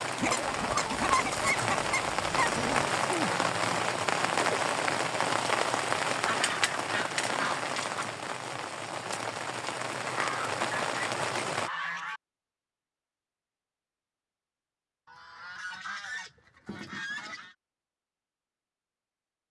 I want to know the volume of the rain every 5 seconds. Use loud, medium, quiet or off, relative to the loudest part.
loud, loud, loud, off.